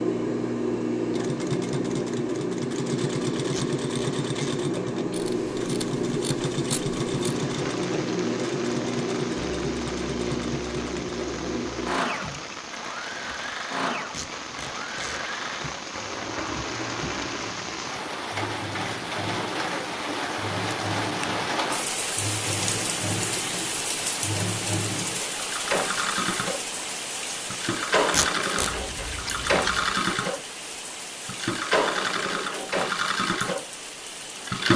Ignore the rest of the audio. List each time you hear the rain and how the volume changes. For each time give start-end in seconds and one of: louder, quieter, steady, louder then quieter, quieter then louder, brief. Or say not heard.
7.2-34.7 louder then quieter.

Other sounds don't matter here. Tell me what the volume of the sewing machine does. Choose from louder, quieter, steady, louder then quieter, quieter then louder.
quieter then louder.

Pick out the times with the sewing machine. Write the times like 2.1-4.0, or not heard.
0.0-34.7.